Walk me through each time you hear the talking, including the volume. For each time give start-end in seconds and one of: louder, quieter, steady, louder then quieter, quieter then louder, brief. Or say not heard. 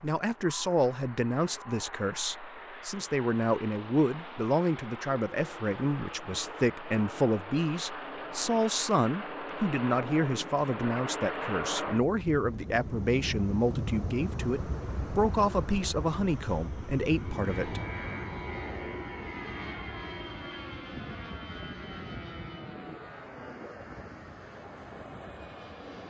0.0-17.8 steady.